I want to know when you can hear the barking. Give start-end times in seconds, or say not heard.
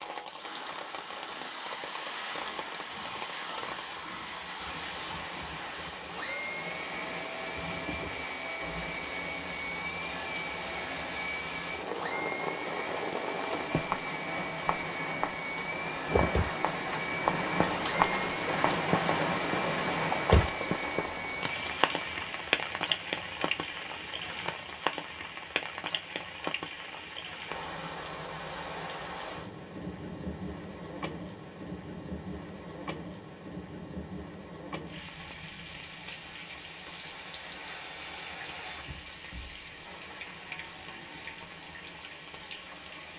not heard.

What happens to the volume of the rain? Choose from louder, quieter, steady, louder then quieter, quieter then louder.
louder then quieter.